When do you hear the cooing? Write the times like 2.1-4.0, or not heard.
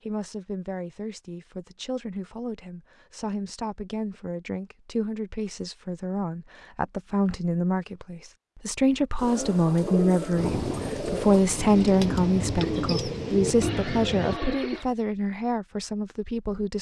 9.2-14.8.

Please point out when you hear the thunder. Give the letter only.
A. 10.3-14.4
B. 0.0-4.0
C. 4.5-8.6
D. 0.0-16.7
A.